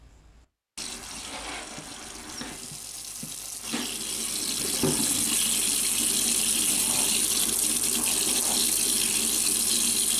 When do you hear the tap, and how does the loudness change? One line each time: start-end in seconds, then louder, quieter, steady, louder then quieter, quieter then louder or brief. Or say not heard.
0.0-10.1 louder.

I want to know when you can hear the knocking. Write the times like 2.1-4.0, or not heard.
not heard.